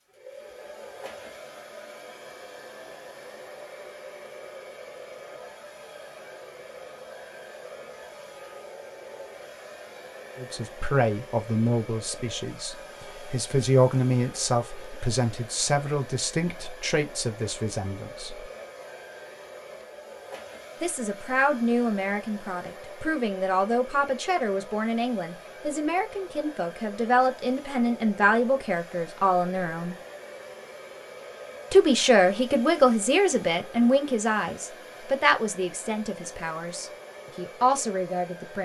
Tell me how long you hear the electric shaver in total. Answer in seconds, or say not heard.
not heard.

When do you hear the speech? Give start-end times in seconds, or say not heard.
10.3-18.4, 20.8-29.9, 31.7-38.5.